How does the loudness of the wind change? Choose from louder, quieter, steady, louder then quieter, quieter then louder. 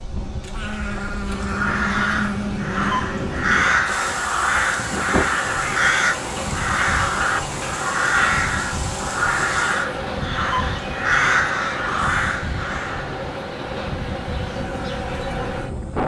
steady.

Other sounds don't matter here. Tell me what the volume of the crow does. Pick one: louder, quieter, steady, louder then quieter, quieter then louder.
steady.